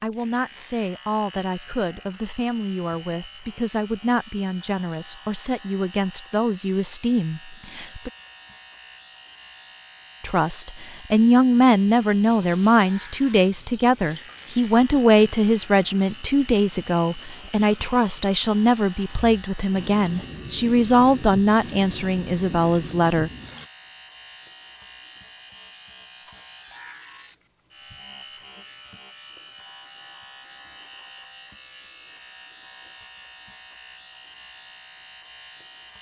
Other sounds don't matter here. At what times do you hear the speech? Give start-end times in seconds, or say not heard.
0.0-8.1, 10.2-23.3.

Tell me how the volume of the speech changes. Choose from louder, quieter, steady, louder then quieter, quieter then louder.
louder.